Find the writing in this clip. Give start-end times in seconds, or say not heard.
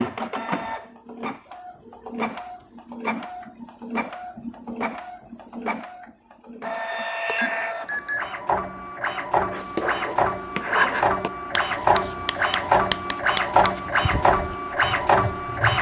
9.5-15.7.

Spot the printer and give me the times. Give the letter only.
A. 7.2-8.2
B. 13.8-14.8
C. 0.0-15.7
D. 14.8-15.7
C.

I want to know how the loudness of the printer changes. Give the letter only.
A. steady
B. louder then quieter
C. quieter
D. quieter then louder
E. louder
E.